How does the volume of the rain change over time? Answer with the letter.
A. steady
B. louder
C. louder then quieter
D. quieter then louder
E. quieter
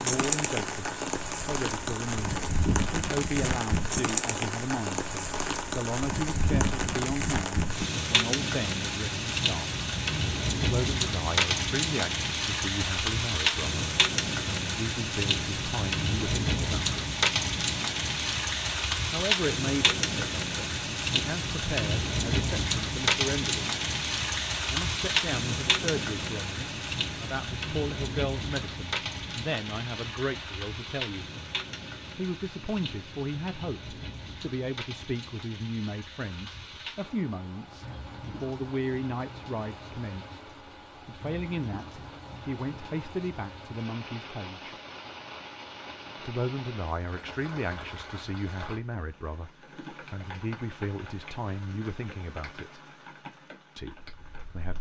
E.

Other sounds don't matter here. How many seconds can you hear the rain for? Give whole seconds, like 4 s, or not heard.
55 s.